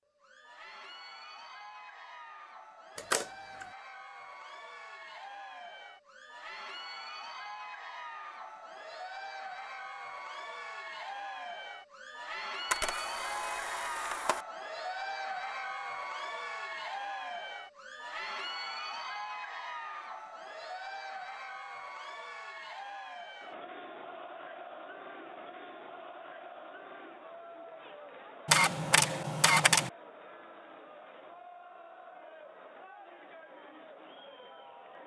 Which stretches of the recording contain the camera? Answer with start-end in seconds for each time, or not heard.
3.0-3.6, 12.7-14.4, 28.4-29.9.